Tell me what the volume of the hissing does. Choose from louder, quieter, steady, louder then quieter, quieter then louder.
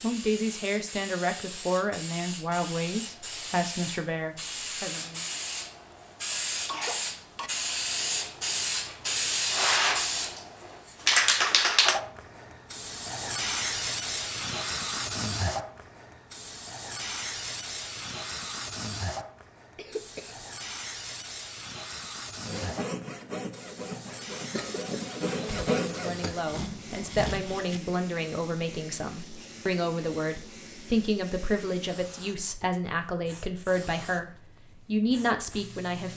louder then quieter.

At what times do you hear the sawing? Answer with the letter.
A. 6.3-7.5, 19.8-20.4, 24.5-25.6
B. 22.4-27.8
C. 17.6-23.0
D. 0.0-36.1
B.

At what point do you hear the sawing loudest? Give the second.
26 s.